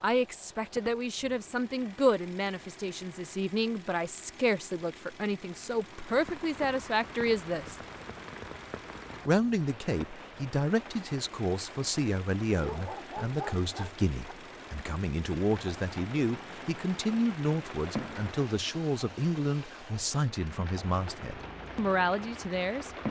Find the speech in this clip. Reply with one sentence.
The speech can be heard from 0.0 to 7.8 s and from 9.2 to 23.0 s.